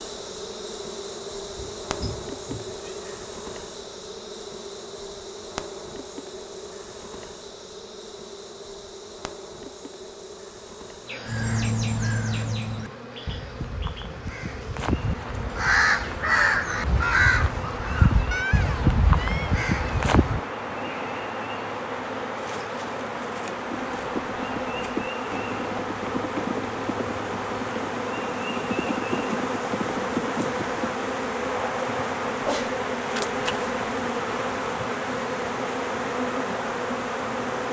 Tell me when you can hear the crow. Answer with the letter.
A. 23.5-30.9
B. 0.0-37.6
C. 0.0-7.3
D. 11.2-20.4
D.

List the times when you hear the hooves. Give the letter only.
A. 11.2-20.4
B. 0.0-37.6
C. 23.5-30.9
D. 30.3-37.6
C.